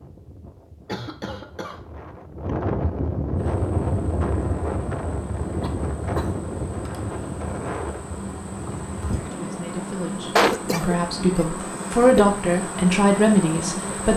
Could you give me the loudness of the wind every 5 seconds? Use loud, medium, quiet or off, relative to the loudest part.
loud, loud, medium.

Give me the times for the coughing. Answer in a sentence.
You can hear the coughing from 0.8 to 1.8 s, from 5.6 to 6.4 s and from 10.3 to 12.3 s.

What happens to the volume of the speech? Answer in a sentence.
The loudness of the speech goes up.